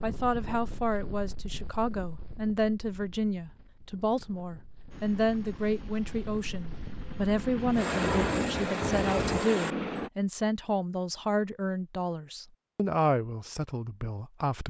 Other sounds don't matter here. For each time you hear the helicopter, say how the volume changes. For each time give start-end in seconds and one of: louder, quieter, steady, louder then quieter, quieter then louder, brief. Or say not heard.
4.9-10.1 louder.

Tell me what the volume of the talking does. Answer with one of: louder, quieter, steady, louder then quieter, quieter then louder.
steady.